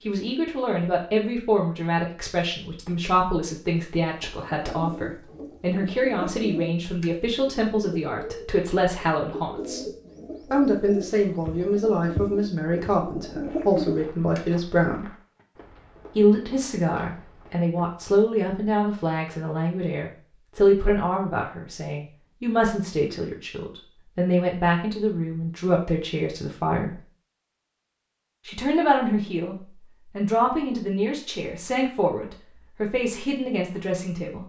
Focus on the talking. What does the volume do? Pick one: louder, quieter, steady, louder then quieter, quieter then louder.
steady.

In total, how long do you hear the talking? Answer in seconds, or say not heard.
31 s.